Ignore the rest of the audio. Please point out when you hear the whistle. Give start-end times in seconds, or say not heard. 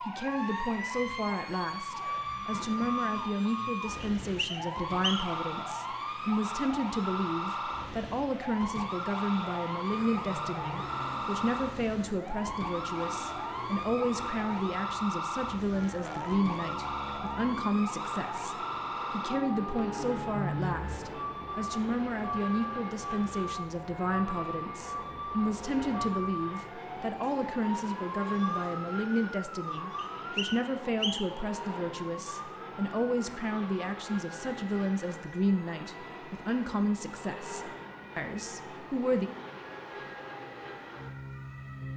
4.2-5.4, 29.9-31.4.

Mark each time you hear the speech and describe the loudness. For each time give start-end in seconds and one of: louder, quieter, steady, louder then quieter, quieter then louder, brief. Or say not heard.
0.1-39.3 steady.